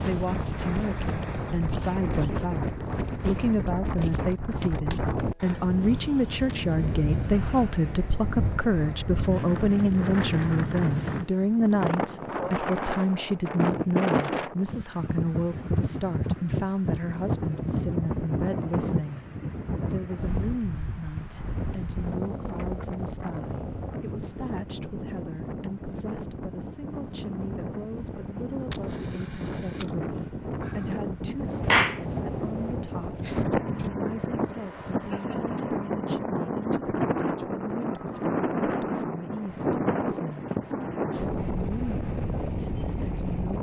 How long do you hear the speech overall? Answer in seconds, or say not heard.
42 s.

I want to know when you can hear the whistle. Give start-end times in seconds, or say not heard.
not heard.